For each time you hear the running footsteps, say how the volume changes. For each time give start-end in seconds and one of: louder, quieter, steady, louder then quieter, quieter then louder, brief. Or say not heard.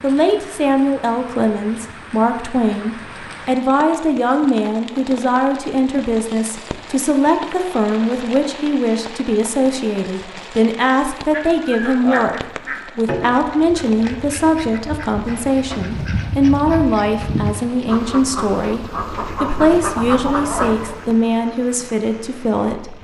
not heard.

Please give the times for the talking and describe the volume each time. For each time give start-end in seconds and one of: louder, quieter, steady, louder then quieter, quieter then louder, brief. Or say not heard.
0.0-22.9 steady.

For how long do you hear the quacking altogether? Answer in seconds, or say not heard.
10 s.